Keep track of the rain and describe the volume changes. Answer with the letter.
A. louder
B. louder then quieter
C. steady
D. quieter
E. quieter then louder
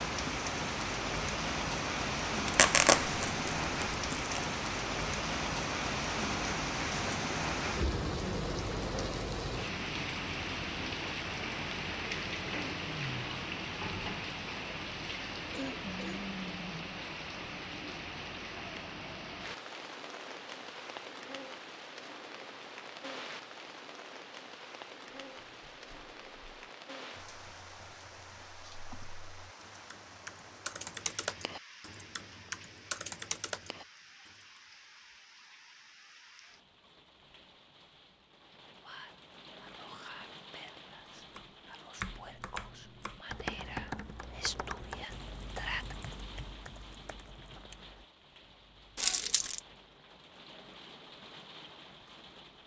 D.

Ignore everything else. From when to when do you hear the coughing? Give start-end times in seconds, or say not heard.
15.5-16.3.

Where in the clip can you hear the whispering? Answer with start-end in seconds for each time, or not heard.
38.8-46.0.